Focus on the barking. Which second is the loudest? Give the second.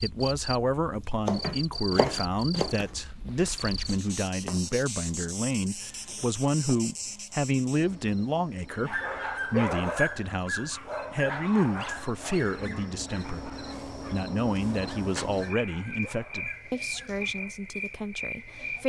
10 s.